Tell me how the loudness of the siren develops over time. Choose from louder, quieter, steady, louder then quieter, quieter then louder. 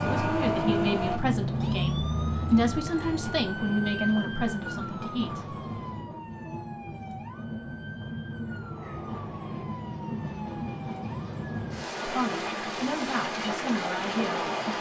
quieter.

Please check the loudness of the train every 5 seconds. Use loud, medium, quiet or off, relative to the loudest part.
loud, medium, loud.